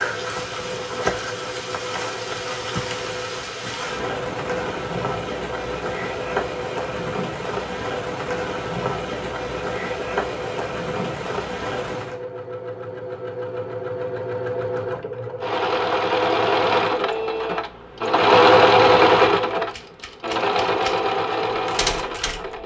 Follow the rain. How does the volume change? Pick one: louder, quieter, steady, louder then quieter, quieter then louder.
steady.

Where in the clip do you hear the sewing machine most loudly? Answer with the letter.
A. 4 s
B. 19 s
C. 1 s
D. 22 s
B.